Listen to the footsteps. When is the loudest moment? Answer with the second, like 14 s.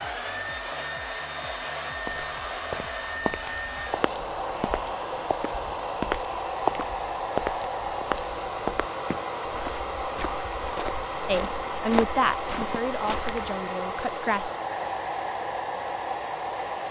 7 s.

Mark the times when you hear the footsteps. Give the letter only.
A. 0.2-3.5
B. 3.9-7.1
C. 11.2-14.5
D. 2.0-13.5
D.